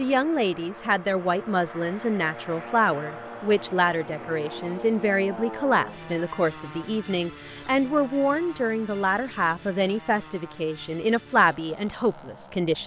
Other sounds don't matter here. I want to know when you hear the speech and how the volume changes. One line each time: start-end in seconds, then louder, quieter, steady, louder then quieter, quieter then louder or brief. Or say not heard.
0.0-12.8 steady.